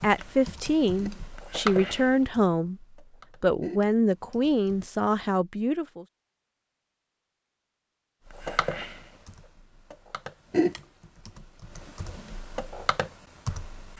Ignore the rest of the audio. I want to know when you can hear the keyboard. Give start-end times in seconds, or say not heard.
0.0-4.8, 8.2-13.9.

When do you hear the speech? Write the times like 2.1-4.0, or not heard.
0.0-6.0.